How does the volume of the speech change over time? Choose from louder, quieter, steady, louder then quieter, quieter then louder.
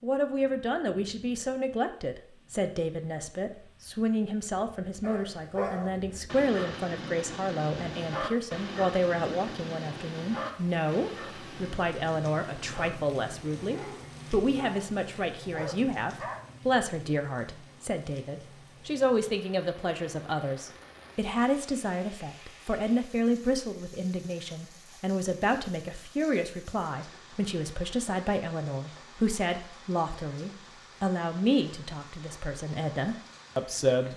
steady.